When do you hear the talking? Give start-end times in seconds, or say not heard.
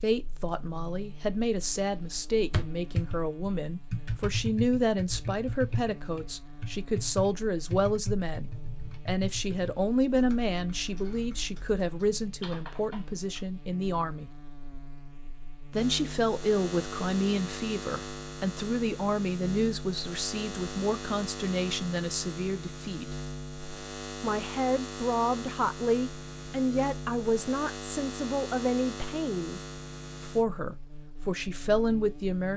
0.0-14.3, 15.7-23.1, 24.2-29.6, 30.2-32.5.